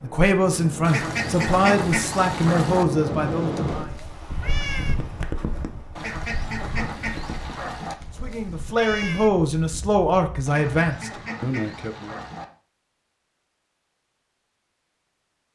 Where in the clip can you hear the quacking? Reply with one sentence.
You can hear the quacking from 0.8 to 2.9 s, from 6.0 to 8.0 s and from 10.4 to 12.4 s.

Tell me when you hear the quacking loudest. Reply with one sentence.
The loudest moment of the quacking is at 2 seconds.